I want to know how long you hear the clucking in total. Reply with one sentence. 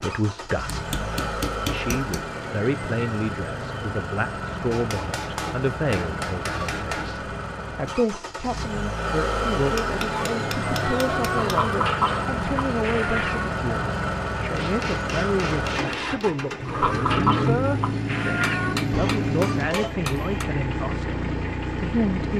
You can hear the clucking for 7 seconds altogether.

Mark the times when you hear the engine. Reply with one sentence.
The engine can be heard from 0.0 to 22.3 s.